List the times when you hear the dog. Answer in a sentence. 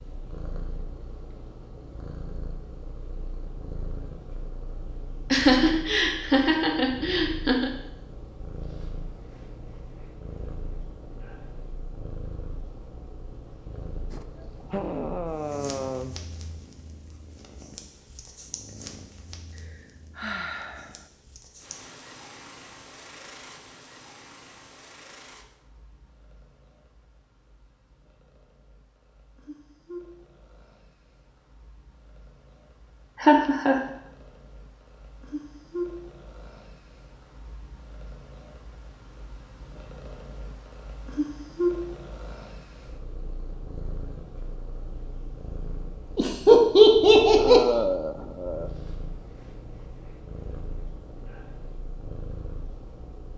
The dog can't be heard in this clip.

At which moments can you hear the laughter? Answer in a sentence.
The laughter can be heard from 5.3 to 7.7 s, from 33.2 to 33.8 s and from 46.1 to 47.8 s.